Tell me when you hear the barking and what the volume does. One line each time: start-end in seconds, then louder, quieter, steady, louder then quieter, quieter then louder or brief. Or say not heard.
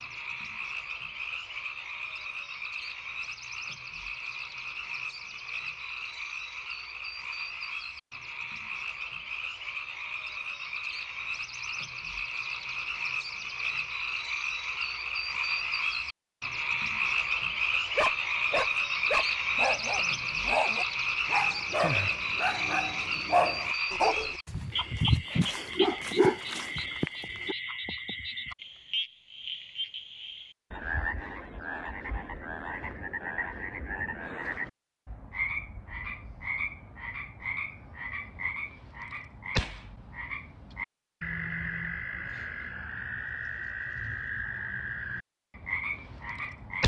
17.9-27.6 steady.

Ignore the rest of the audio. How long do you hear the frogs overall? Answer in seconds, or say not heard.
47 s.